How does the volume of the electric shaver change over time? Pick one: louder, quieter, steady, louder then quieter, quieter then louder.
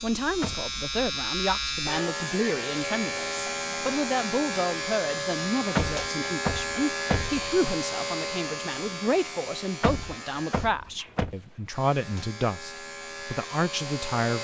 quieter.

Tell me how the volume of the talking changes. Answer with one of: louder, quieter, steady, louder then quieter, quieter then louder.
steady.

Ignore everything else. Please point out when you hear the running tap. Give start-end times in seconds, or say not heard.
not heard.